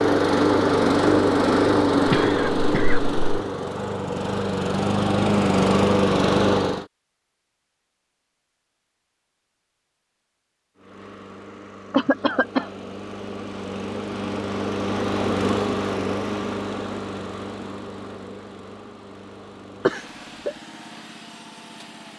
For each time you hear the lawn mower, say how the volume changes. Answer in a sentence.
You can hear the lawn mower from 0.0 to 6.8 s, getting quieter then louder; and from 10.8 to 22.1 s, getting louder then quieter.